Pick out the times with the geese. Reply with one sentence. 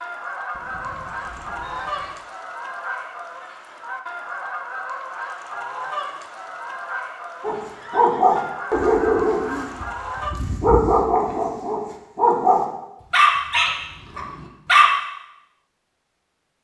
The geese can be heard from 0.0 to 10.3 s.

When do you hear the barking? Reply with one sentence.
The barking can be heard from 7.4 to 14.8 s.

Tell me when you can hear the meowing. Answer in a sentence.
The meowing can't be heard in this clip.